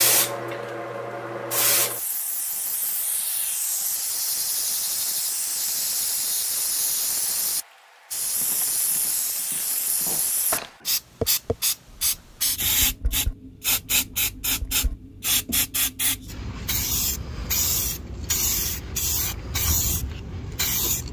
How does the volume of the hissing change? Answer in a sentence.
The volume of the hissing stays about the same.